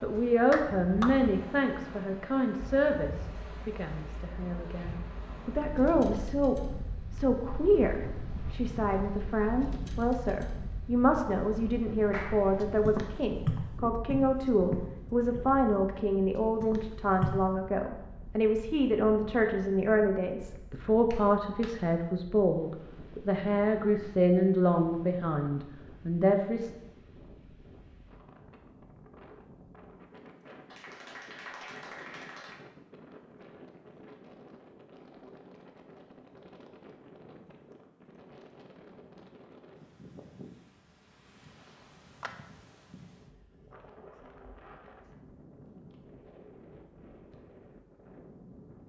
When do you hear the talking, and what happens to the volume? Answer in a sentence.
You can hear the talking from 0.0 to 26.7 s, at a steady volume.